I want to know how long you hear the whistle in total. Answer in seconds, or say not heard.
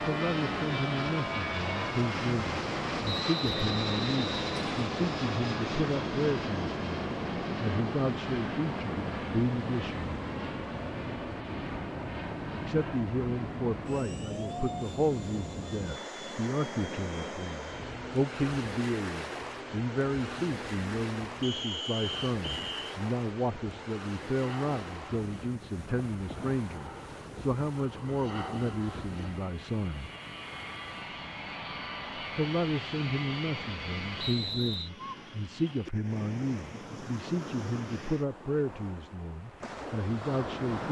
4 s.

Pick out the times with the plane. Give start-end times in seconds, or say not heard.
0.0-34.5.